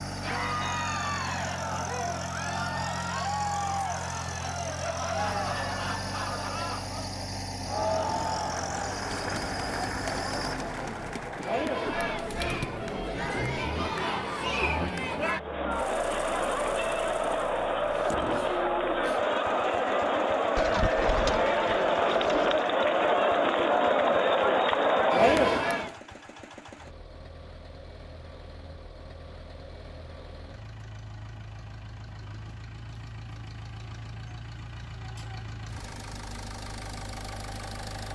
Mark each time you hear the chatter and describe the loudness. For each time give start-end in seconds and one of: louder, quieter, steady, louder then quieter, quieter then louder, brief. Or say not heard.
0.1-25.9 louder.